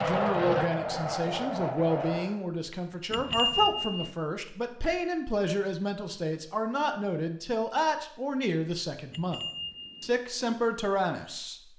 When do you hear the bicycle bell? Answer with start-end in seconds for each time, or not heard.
3.1-4.2, 9.1-10.2.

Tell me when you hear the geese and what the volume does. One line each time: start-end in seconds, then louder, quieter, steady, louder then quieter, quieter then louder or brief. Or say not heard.
not heard.